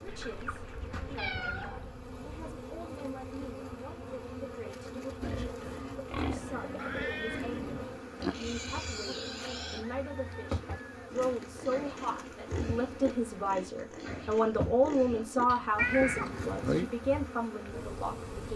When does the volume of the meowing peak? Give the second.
16 s.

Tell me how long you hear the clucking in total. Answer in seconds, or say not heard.
3 s.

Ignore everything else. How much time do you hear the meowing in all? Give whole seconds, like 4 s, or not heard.
4 s.